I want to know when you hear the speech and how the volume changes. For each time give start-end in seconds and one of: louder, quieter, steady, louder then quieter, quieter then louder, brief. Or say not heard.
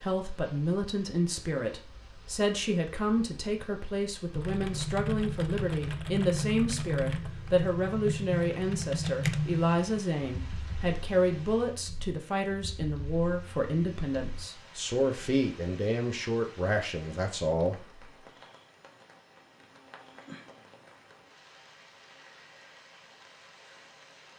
0.0-18.1 steady.